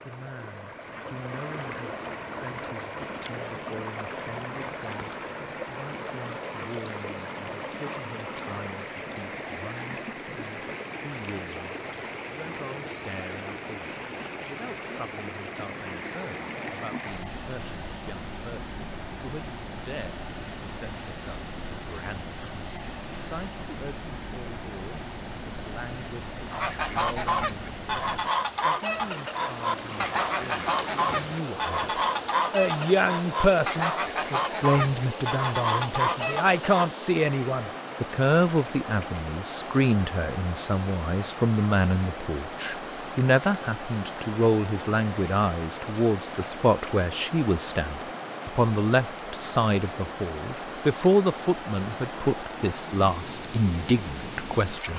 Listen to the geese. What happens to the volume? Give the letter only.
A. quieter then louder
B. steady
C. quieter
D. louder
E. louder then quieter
B.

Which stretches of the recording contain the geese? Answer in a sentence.
You can hear the geese from 26.5 to 36.9 s.